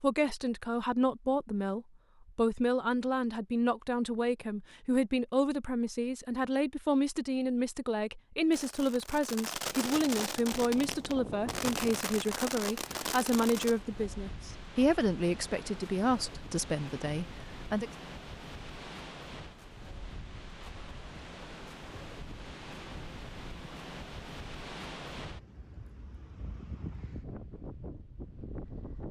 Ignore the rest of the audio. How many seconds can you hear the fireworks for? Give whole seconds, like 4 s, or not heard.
5 s.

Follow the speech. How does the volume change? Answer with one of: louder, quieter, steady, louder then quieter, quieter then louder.
steady.